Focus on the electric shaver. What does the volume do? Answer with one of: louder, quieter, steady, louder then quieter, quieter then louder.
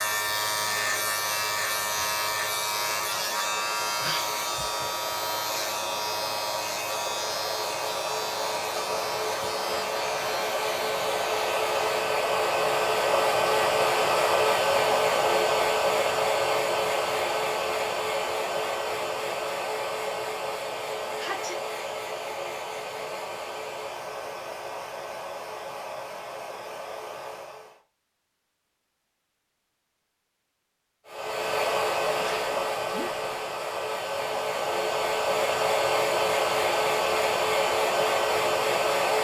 quieter.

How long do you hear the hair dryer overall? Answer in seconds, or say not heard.
36 s.